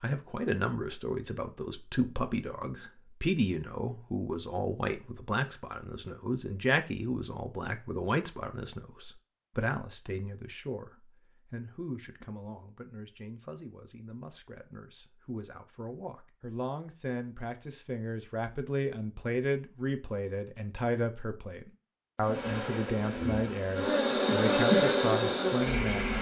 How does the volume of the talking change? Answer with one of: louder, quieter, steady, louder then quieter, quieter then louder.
quieter then louder.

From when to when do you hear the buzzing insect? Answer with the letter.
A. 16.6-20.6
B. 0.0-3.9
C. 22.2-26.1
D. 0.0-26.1
C.